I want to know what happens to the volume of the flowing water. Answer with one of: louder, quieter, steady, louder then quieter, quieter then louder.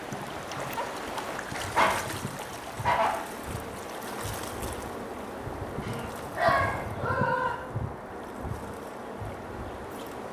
quieter.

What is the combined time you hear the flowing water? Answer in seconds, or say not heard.
10 s.